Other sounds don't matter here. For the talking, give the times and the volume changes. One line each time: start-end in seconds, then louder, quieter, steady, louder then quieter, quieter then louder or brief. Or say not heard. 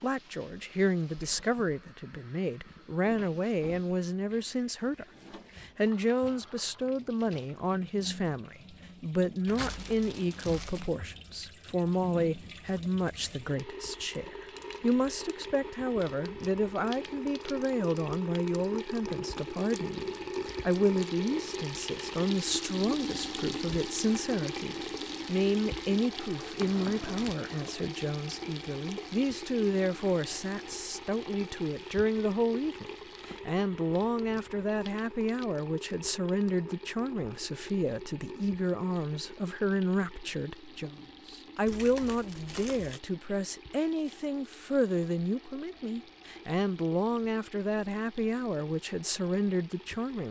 0.0-50.2 steady.